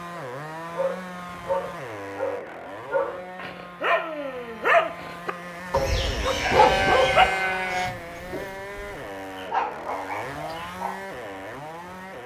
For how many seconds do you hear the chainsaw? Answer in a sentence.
The chainsaw can be heard for 12 seconds in total.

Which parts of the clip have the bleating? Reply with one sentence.
You can hear the bleating from 6.3 to 8.0 s.